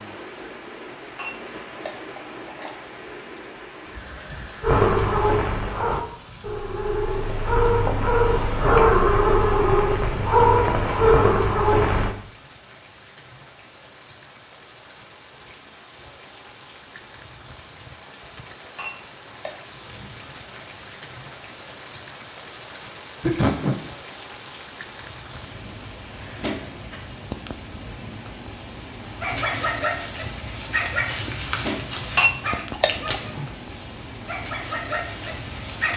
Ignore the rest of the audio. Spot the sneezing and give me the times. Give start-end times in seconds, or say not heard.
23.2-23.8.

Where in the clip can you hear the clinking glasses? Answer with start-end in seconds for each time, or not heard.
1.1-2.8, 18.8-19.6, 32.1-33.1.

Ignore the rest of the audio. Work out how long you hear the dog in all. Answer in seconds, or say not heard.
14 s.